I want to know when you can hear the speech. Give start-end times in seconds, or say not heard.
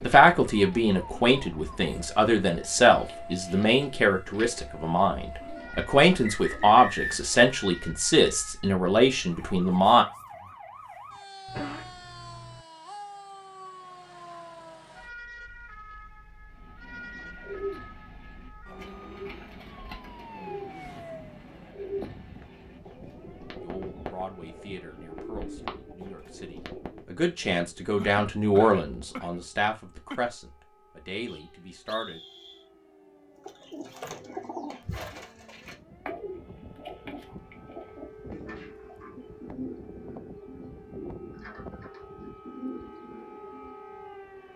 0.0-10.1, 23.6-32.2.